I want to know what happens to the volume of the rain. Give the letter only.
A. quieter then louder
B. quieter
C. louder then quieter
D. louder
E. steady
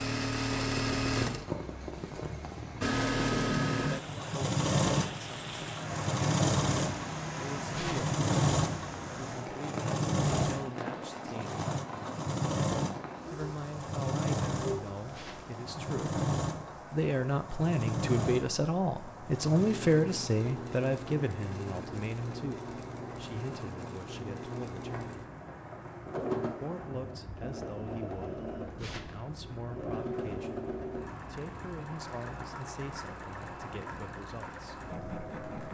B.